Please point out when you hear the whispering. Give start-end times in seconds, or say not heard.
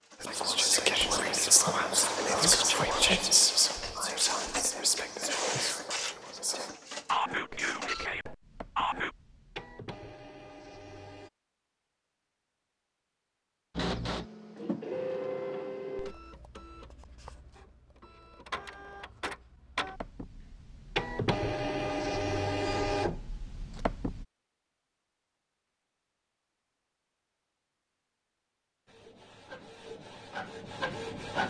0.2-9.1.